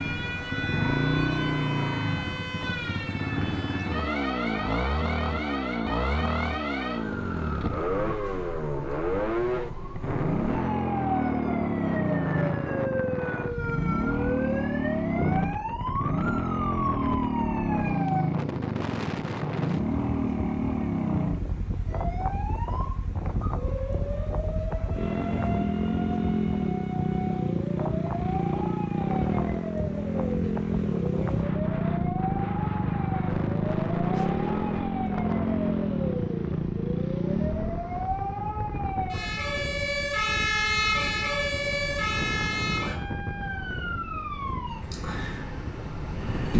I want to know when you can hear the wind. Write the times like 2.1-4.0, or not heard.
10.0-46.5.